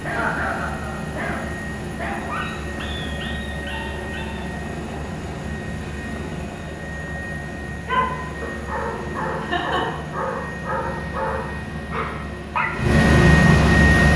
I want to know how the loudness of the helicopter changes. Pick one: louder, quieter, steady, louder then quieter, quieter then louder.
louder.